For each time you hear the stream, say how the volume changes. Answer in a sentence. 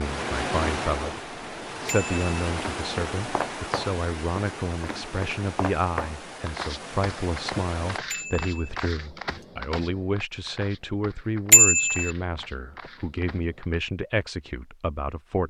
The stream can be heard from 0.0 to 8.0 s, getting quieter.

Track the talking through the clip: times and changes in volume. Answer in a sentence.
The talking can be heard from 0.0 to 15.4 s, at a steady volume.